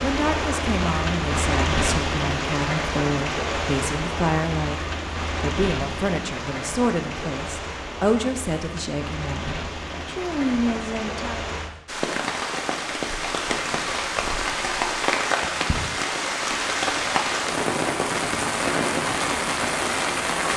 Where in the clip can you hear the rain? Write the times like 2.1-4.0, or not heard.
0.0-20.5.